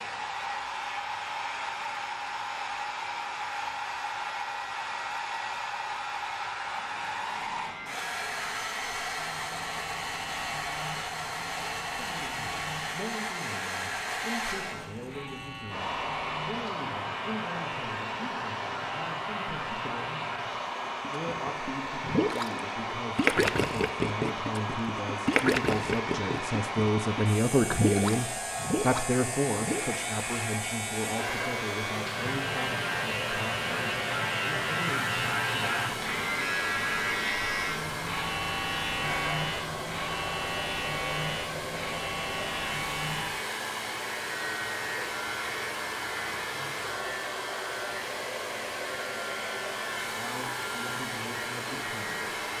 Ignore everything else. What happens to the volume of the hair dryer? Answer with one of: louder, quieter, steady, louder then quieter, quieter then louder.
steady.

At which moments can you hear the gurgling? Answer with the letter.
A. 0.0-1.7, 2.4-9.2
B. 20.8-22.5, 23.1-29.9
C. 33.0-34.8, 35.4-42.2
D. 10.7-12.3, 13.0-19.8
B.